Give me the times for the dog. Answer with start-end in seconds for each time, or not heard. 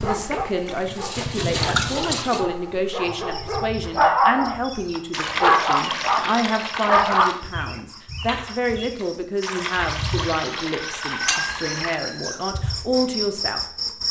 0.0-7.4.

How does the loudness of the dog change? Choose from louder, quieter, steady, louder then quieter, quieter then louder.
louder.